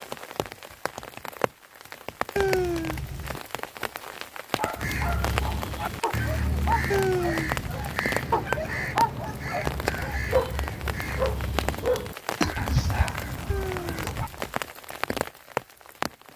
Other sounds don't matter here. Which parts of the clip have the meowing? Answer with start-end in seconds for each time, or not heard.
2.4-3.4, 6.9-7.9, 13.4-14.5.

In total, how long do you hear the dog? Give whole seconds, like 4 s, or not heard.
10 s.